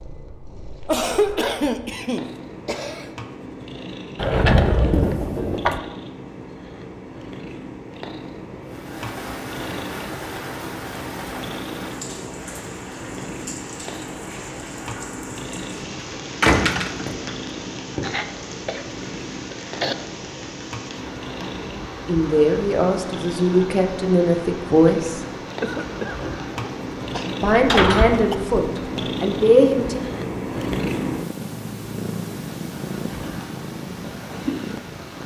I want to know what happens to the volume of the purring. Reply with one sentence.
The volume of the purring goes up.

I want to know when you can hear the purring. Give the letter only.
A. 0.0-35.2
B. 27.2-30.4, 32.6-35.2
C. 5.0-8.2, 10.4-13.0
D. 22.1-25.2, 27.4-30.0
A.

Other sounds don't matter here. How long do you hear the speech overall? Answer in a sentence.
You can hear the speech for 6 seconds altogether.